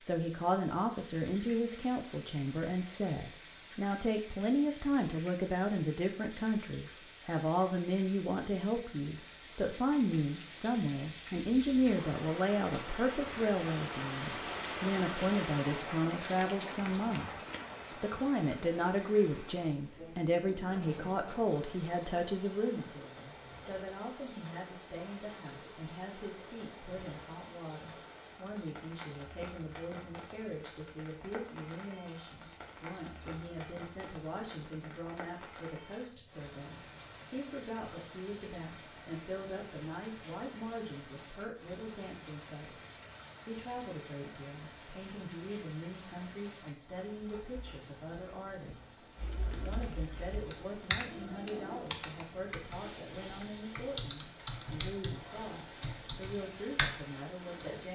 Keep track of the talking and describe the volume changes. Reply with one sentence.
The volume of the talking goes down.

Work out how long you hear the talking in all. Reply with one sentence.
You can hear the talking for 58 seconds altogether.